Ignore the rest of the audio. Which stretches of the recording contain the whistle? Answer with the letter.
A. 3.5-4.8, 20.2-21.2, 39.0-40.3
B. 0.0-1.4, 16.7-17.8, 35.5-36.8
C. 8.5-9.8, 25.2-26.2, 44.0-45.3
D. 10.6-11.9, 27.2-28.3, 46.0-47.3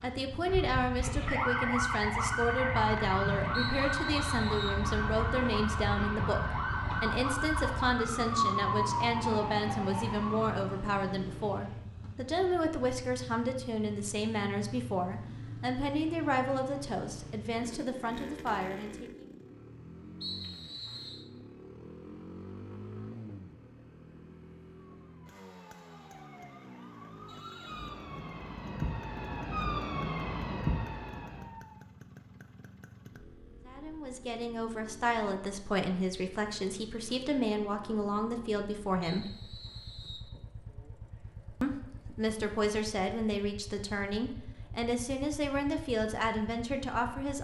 A.